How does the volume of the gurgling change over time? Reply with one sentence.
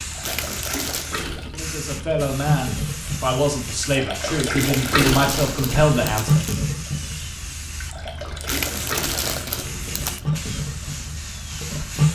The loudness of the gurgling goes up, then down.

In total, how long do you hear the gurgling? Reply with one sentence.
You can hear the gurgling for 12 seconds altogether.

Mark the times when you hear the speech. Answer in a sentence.
You can hear the speech from 1.5 to 6.3 s.